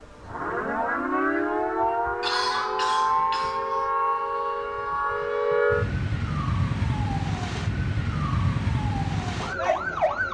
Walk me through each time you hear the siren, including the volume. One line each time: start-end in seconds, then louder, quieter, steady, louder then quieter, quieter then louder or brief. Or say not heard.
0.0-10.2 steady.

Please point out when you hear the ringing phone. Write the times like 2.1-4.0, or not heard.
not heard.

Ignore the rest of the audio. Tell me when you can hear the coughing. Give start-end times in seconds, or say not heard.
2.2-3.9.